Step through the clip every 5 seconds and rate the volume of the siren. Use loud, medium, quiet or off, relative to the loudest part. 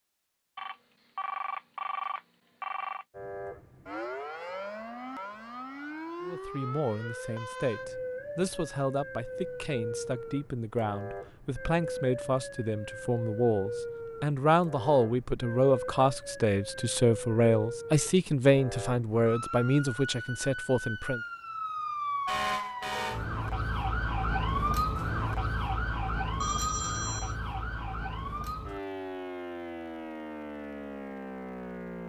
medium, medium, medium, medium, loud, loud, medium.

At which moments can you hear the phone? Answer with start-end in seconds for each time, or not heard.
0.6-3.0, 26.4-27.4.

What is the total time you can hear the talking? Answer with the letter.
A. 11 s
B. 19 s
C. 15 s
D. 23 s
C.